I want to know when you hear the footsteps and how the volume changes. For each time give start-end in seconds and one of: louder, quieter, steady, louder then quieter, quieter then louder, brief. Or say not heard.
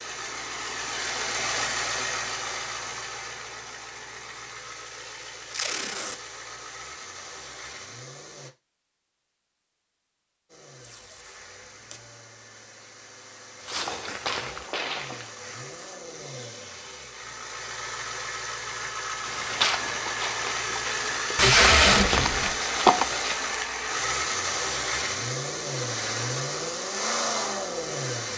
13.7-15.4 brief
19.2-23.4 quieter then louder.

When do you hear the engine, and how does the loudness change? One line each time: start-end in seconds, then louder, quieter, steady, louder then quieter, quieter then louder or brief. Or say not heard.
0.0-8.5 quieter
10.4-28.3 louder.